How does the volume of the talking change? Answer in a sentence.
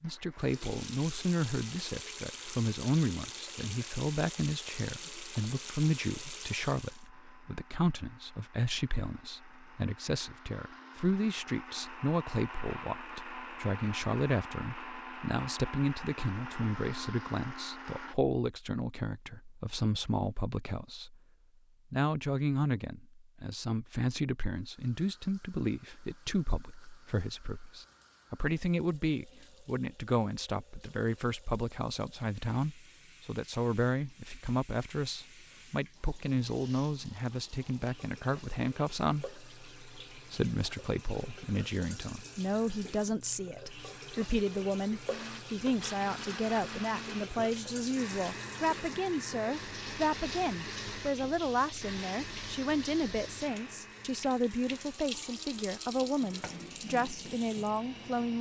The volume of the talking stays about the same.